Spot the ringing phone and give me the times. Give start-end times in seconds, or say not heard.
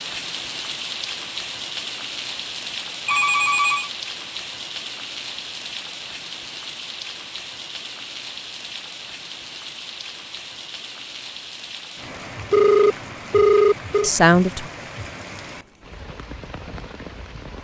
3.0-3.9, 12.5-14.1.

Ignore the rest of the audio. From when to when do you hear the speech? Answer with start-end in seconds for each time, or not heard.
14.0-14.7.